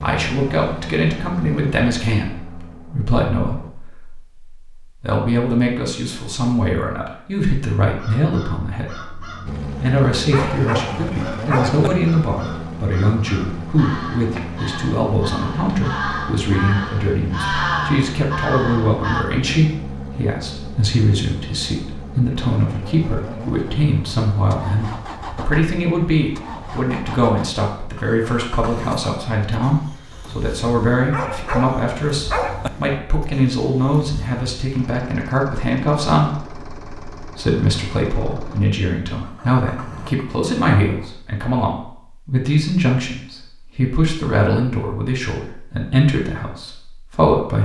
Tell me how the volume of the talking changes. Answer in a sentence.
The volume of the talking stays about the same.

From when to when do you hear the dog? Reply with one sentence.
The dog can be heard from 10.3 to 11.9 s and from 31.1 to 32.7 s.